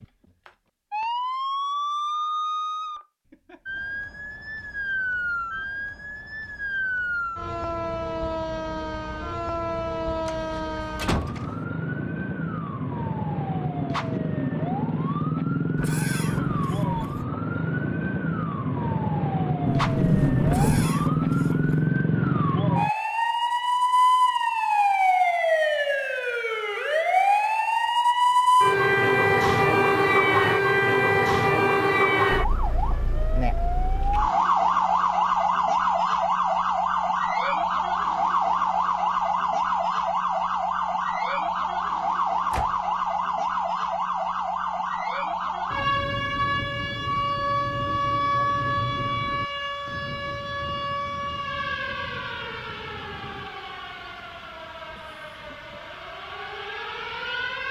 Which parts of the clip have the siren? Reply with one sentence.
You can hear the siren from 0.0 to 57.6 s.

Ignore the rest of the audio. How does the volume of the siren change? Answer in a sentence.
The volume of the siren goes up, then down.